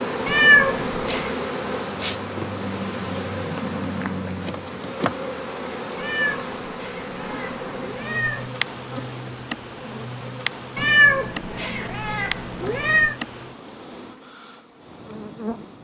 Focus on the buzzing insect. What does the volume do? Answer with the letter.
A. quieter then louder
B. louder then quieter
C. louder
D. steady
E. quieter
E.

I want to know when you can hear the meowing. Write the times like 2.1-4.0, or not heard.
0.2-1.3, 6.0-8.5, 10.8-13.2.